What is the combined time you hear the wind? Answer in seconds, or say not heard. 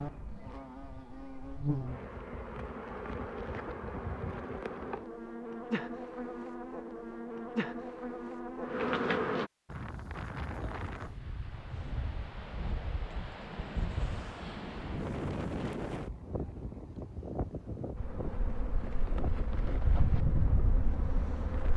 12 s.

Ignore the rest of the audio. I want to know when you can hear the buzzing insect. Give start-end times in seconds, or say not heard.
0.0-9.5, 17.9-21.7.